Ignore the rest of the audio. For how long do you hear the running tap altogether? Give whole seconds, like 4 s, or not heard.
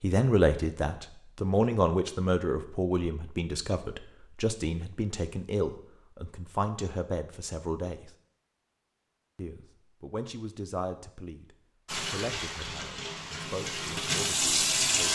3 s.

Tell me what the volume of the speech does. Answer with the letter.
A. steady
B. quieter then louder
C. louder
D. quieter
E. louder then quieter
D.